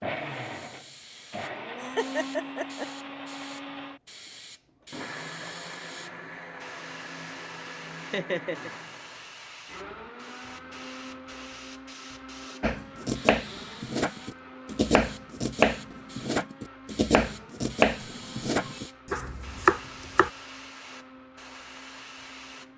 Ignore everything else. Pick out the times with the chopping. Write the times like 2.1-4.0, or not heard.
12.6-20.3.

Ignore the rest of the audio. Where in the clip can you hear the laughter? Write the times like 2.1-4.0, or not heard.
1.8-2.9, 8.1-8.7, 17.9-18.8.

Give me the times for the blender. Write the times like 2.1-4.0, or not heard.
0.0-22.7.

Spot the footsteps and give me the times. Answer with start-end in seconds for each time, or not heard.
not heard.